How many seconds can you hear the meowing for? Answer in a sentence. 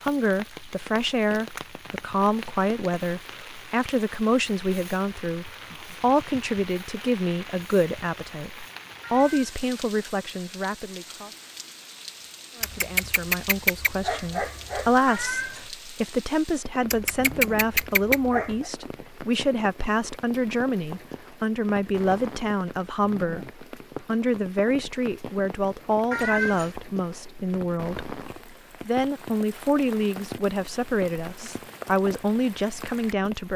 The meowing can be heard for 2 seconds in total.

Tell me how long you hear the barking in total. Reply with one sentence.
The barking can be heard for 4 seconds in total.